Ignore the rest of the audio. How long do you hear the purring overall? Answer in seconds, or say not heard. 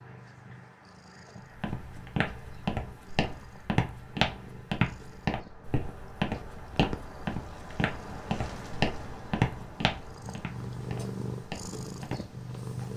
13 s.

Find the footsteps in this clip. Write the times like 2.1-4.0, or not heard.
1.6-12.3.